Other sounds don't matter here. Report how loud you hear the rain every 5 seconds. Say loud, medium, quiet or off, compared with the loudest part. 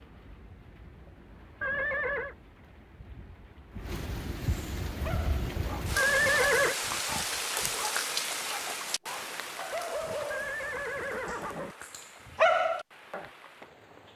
medium, loud, quiet.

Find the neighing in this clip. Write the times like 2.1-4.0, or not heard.
1.6-2.4, 6.0-6.8, 10.3-11.8.